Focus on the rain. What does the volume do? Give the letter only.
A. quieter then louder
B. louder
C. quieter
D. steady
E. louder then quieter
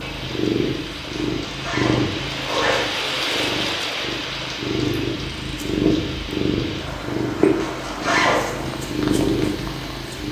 E.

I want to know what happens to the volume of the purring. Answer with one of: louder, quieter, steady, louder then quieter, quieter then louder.
quieter then louder.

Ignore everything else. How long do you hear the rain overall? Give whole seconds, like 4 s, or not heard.
10 s.